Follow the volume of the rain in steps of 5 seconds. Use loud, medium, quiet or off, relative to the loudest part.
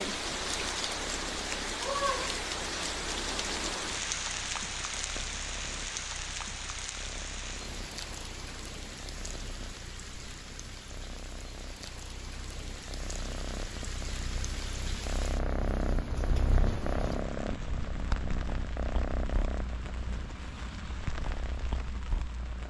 loud, medium, medium, medium, medium.